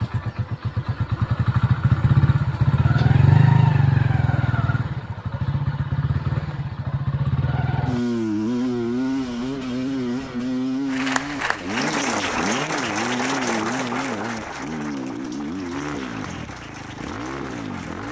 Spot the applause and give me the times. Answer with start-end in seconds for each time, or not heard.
10.8-18.0.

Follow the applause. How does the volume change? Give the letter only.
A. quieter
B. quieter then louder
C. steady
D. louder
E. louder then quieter
A.